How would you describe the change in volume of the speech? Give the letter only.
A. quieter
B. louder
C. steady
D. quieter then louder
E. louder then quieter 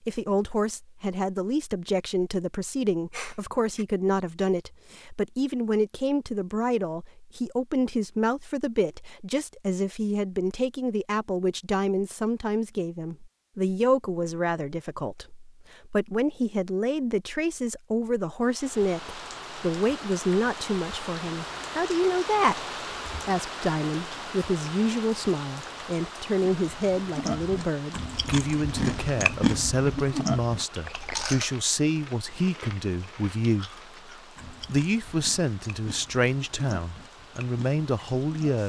C.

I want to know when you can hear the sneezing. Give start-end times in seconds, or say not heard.
3.1-3.9, 30.9-31.5.